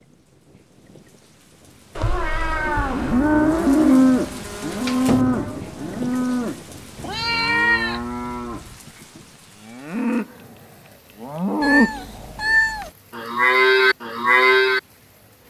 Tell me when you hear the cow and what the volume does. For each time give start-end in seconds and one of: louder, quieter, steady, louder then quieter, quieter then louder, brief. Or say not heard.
2.6-14.8 quieter then louder.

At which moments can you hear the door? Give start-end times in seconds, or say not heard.
4.7-5.7.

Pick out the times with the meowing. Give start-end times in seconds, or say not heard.
1.9-3.2, 7.0-8.0, 11.6-12.9.